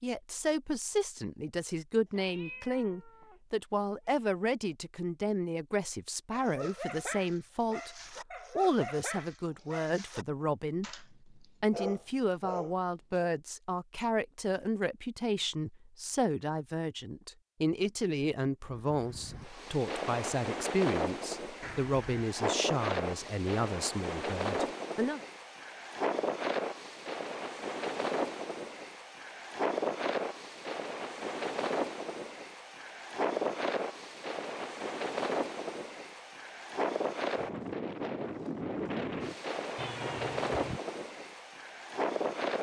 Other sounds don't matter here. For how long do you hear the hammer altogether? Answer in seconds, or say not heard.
not heard.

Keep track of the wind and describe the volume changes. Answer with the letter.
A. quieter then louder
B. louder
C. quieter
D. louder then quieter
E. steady
E.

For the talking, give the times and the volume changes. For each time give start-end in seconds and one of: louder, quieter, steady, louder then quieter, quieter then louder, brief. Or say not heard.
0.0-8.0 steady
8.6-25.2 steady.